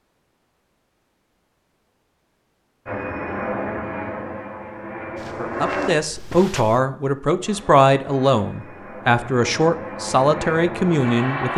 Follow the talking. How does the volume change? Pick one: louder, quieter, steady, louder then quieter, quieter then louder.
steady.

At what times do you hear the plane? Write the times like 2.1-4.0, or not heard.
2.9-5.9, 7.4-11.5.